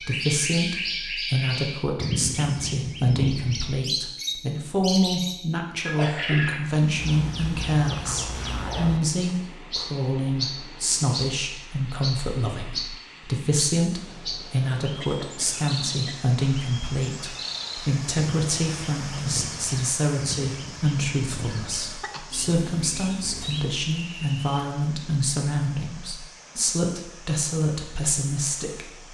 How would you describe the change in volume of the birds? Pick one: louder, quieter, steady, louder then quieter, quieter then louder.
quieter.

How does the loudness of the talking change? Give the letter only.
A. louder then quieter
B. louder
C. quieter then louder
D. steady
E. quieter
D.